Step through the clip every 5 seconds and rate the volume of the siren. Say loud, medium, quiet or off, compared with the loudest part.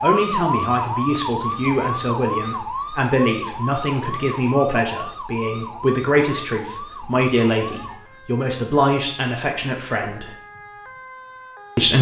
loud, medium, quiet.